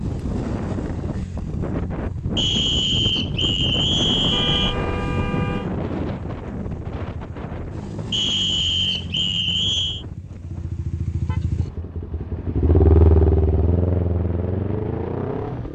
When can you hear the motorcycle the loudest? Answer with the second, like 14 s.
13 s.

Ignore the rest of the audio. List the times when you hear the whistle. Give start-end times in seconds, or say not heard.
2.4-4.8, 8.1-10.1.